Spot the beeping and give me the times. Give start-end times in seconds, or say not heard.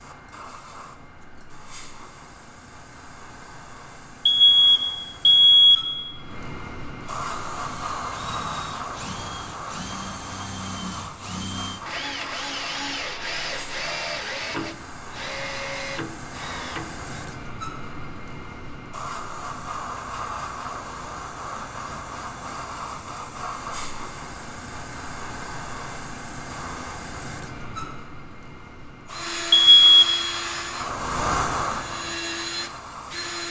4.2-5.8, 29.5-30.1.